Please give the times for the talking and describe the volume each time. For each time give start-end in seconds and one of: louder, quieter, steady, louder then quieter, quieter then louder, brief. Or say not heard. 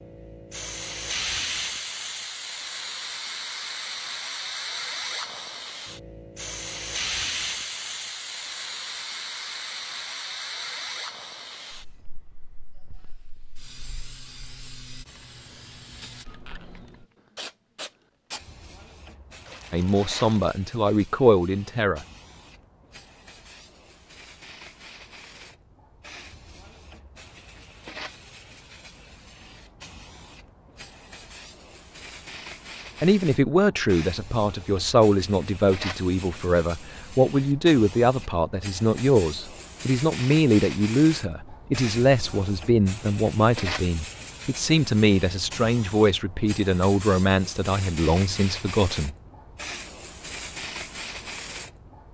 19.7-22.1 brief
33.0-49.1 steady.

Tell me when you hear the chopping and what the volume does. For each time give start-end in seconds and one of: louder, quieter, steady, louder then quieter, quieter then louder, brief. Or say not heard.
not heard.